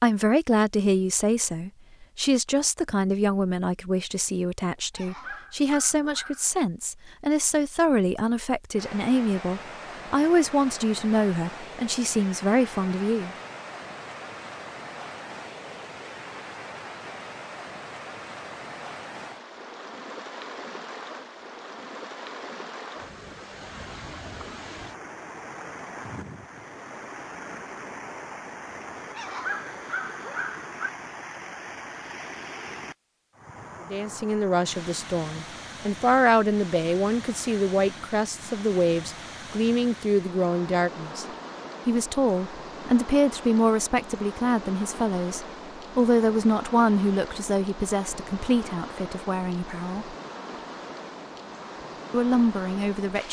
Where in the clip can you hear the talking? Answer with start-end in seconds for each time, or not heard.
0.0-13.3, 33.8-41.2, 41.9-50.1, 52.1-53.2.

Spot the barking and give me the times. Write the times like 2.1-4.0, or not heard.
4.9-6.5, 29.1-30.9.